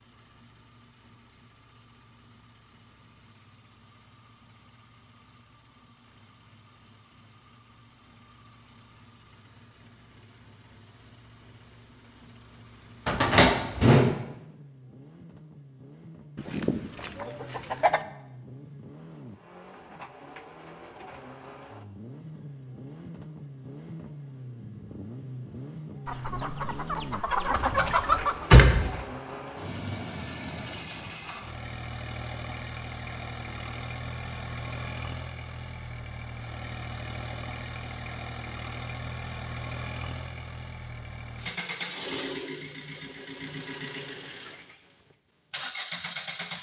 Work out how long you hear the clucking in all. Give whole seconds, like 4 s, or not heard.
4 s.